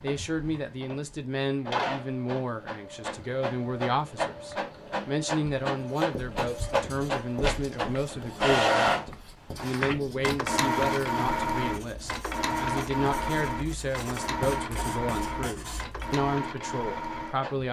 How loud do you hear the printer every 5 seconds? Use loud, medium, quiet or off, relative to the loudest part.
medium, loud, loud, medium.